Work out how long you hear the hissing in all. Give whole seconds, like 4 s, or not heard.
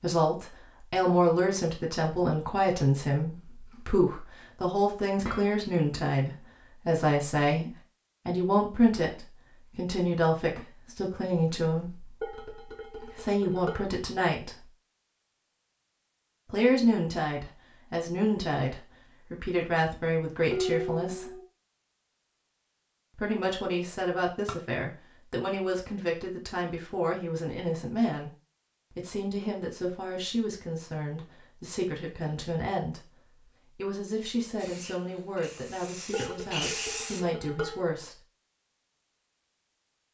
3 s.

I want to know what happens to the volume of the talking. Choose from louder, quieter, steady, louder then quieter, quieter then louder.
quieter.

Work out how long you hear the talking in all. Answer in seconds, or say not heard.
33 s.